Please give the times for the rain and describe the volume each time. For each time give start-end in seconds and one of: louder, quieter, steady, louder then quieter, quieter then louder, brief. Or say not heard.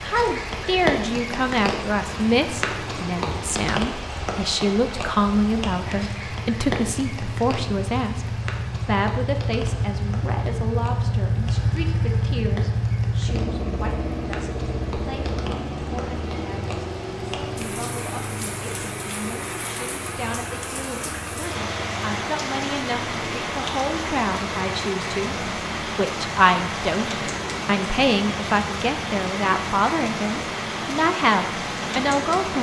0.0-32.5 quieter then louder.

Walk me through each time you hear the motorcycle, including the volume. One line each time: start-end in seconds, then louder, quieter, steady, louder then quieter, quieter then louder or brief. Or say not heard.
0.0-32.5 louder then quieter.